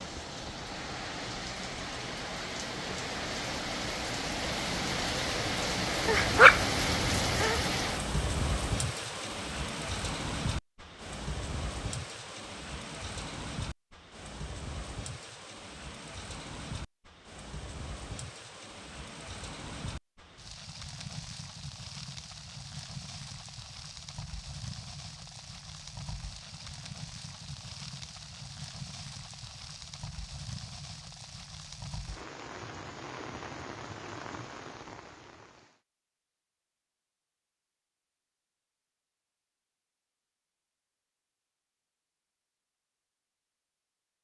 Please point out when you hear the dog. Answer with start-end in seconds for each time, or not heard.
6.0-7.7.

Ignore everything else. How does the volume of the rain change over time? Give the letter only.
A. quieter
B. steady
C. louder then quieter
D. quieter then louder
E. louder
A.